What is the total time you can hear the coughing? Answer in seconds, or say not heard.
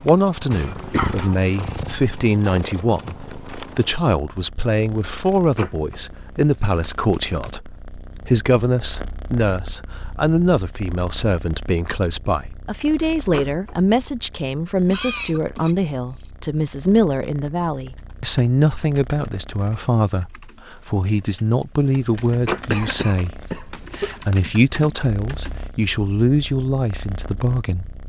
4 s.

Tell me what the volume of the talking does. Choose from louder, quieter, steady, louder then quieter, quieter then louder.
steady.